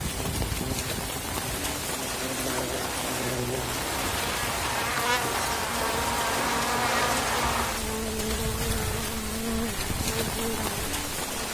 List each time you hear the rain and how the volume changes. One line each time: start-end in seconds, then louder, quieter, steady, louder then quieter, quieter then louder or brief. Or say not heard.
0.0-11.4 steady.